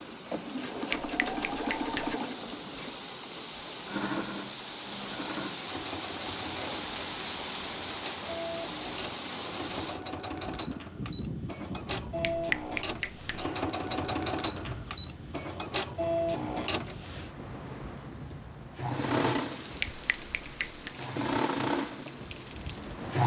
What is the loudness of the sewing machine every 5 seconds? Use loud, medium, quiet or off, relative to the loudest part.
loud, medium, loud, loud, loud.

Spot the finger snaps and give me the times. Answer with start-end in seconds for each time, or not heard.
0.9-2.1, 12.2-13.4, 19.8-20.9.